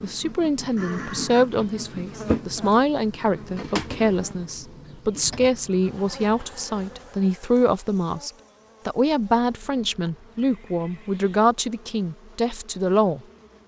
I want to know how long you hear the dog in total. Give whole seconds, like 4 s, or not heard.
not heard.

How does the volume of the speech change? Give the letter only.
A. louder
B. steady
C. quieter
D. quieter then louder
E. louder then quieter
B.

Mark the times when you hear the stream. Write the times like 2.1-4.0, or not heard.
not heard.